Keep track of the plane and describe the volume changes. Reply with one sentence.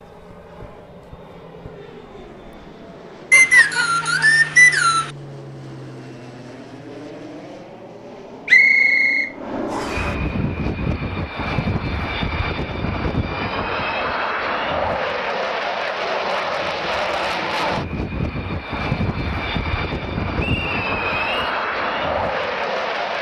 The loudness of the plane goes up.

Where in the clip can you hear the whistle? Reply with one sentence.
The whistle can be heard from 3.3 to 5.1 s, from 8.4 to 10.0 s and from 20.4 to 21.6 s.